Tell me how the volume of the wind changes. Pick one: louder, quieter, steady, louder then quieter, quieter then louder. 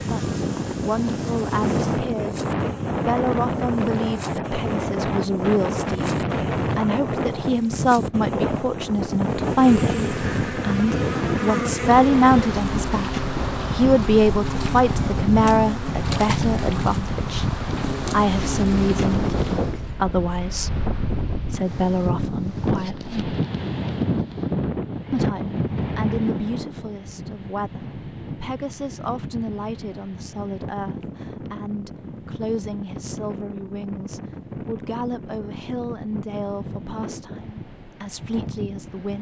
quieter.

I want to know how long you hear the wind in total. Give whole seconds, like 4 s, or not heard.
39 s.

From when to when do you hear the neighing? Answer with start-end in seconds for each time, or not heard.
not heard.